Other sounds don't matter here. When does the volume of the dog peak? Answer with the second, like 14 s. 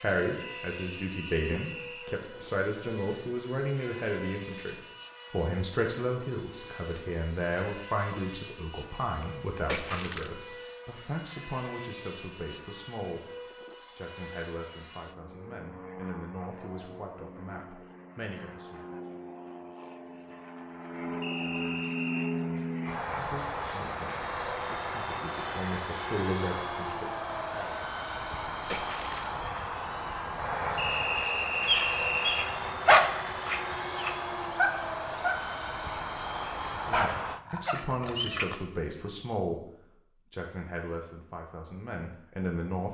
33 s.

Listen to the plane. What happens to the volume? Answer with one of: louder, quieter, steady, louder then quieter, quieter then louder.
louder.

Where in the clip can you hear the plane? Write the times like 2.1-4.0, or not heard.
0.0-37.4.